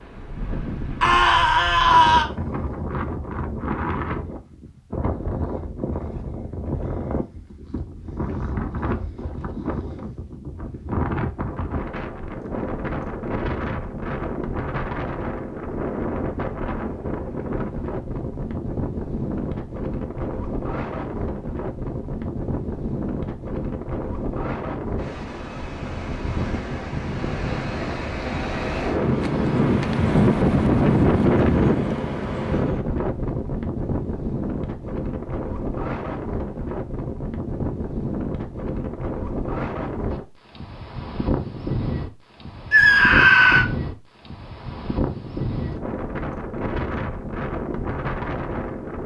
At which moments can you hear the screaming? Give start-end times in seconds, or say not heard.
1.0-2.2, 42.7-43.6.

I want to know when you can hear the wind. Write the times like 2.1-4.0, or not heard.
0.0-49.0.